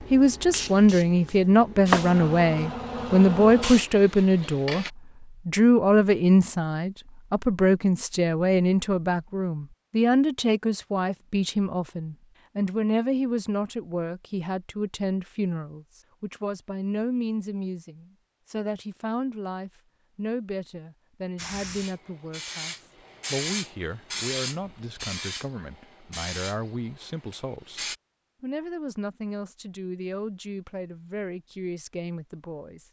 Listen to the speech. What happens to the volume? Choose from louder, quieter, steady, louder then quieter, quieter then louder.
quieter.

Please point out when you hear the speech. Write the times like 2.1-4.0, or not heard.
0.1-32.8.